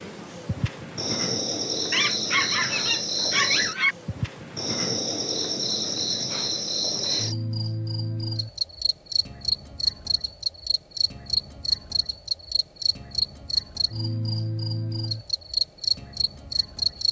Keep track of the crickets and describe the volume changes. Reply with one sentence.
The loudness of the crickets stays about the same.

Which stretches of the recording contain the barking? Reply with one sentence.
You can hear the barking from 1.9 to 4.0 s.